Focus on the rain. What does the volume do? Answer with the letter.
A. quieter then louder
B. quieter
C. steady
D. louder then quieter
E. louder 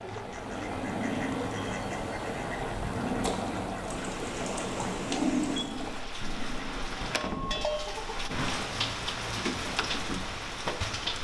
E.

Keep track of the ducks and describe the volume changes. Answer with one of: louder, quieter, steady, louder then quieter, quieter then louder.
quieter.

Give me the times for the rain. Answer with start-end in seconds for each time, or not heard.
0.0-11.1.